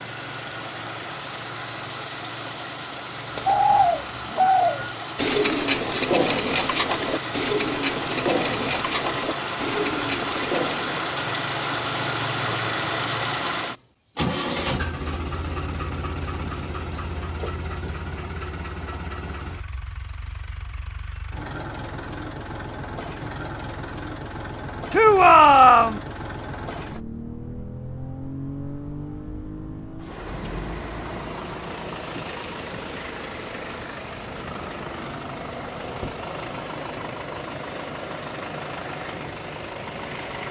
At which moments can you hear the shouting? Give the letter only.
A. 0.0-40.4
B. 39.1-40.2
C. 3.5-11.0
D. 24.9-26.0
D.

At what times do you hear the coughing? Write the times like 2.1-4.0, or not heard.
not heard.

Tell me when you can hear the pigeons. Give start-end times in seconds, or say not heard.
3.5-11.0.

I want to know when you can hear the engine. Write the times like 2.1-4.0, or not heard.
0.0-40.4.